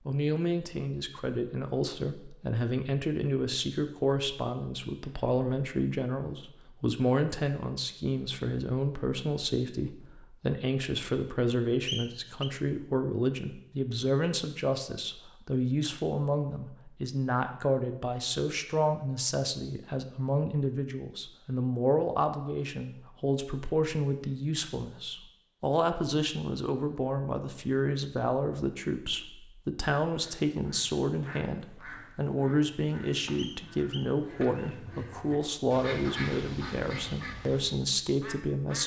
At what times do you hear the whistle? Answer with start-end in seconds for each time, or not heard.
11.8-12.5, 33.4-34.8.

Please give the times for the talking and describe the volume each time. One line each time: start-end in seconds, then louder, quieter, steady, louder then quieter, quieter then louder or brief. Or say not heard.
0.1-38.8 steady.